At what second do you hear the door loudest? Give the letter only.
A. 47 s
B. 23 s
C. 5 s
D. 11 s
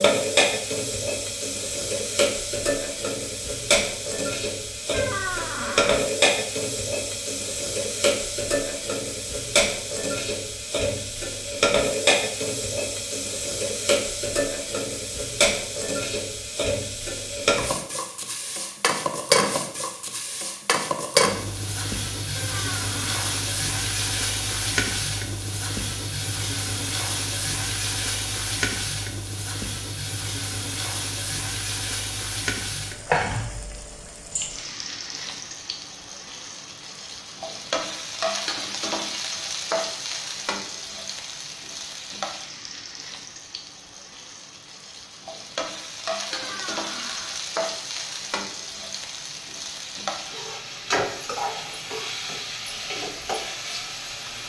C.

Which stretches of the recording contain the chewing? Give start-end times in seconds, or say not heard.
not heard.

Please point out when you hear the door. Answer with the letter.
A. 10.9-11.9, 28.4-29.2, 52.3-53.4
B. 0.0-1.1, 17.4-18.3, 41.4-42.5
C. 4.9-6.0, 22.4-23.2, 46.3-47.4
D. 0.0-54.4
C.